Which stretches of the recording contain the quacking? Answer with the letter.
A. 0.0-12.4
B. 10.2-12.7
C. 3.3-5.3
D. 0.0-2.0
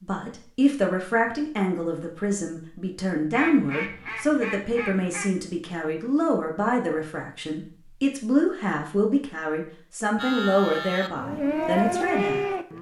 C.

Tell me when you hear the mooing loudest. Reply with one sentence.
The loudest moment of the mooing is at 12 seconds.